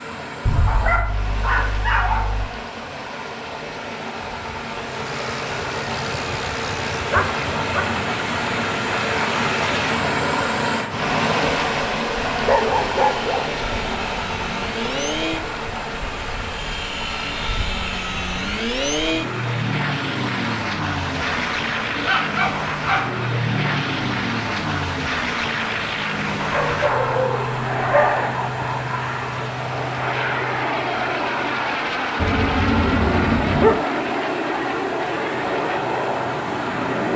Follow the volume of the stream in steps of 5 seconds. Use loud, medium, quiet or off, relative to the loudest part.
medium, loud, loud, medium, medium, medium, medium, medium.